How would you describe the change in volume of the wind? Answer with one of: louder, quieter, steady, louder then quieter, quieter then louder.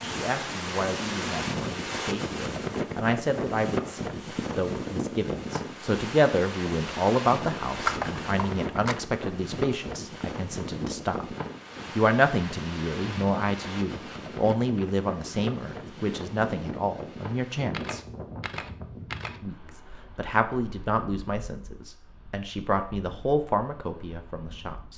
quieter.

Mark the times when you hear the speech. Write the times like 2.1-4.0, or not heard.
0.0-11.2, 11.9-18.1, 19.4-24.9.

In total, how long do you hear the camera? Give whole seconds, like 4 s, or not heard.
3 s.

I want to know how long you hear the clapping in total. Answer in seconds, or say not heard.
not heard.